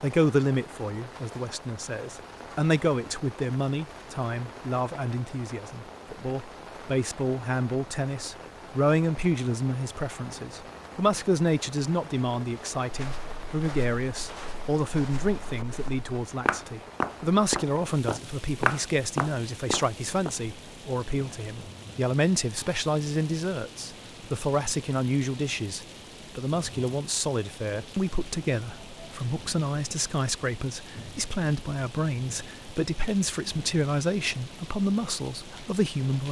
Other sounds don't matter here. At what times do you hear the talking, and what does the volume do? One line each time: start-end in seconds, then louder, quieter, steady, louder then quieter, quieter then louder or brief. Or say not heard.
0.0-36.2 steady.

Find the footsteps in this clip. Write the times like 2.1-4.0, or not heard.
12.9-20.3.